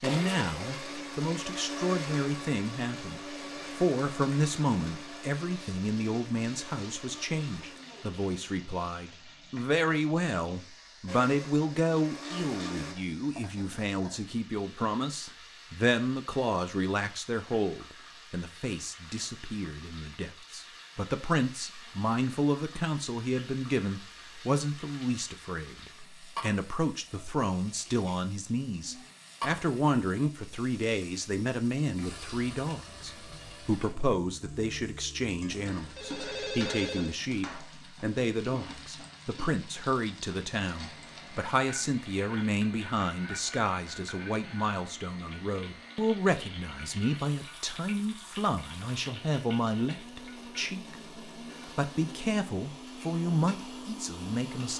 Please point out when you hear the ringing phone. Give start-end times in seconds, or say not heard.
35.5-37.1.